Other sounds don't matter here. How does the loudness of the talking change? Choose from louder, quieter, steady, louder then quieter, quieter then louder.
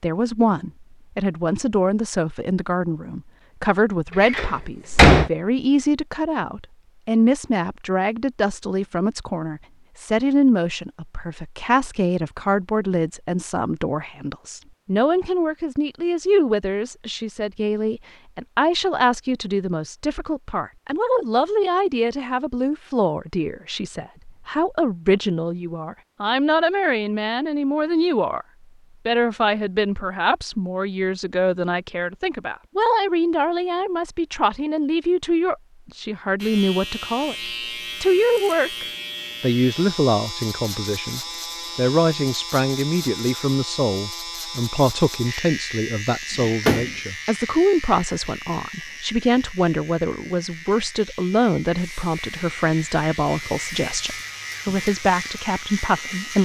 steady.